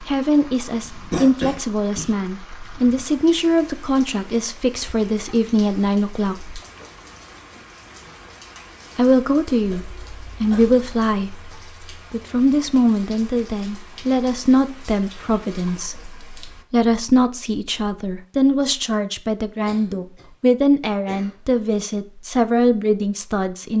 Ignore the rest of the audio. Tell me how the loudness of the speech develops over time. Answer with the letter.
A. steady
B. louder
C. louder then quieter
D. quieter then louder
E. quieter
A.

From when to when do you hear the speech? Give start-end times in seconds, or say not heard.
0.0-6.5, 8.9-23.7.